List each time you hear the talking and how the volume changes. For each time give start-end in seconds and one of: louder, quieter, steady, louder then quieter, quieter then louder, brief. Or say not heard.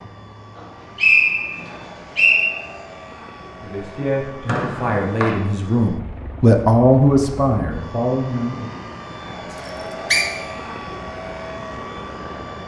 3.6-8.7 louder then quieter.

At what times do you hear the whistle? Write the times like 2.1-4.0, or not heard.
0.6-2.5, 4.5-5.3, 9.7-10.2.